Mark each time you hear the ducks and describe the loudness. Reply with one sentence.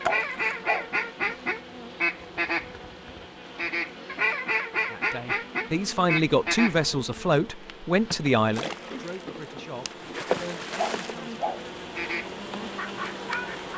You can hear the ducks from 0.0 to 7.3 s, at a steady volume; and briefly from 11.9 to 13.7 s.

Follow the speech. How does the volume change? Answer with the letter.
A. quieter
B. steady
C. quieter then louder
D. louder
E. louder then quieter
A.